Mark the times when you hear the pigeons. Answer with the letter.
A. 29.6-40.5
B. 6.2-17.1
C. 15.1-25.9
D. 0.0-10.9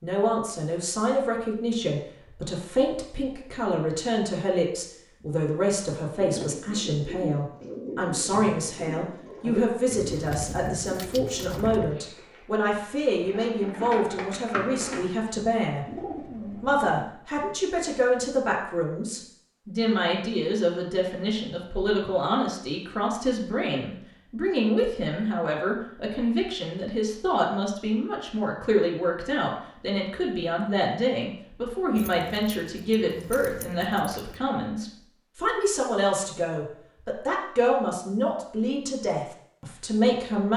B.